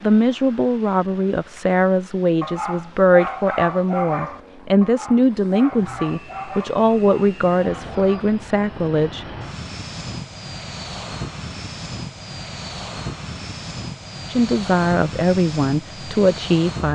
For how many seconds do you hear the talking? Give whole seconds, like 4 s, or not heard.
12 s.